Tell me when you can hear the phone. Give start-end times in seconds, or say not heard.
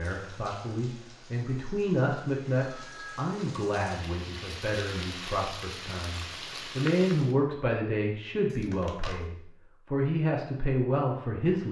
2.6-3.3.